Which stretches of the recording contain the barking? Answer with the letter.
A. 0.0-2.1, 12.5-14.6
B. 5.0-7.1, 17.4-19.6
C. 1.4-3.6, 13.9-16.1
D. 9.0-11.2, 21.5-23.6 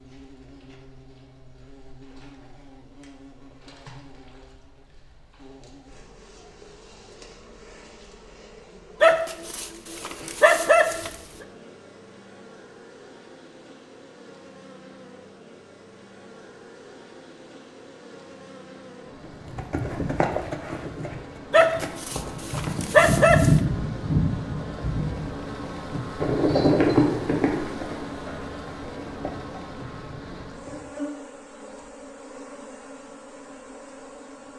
D.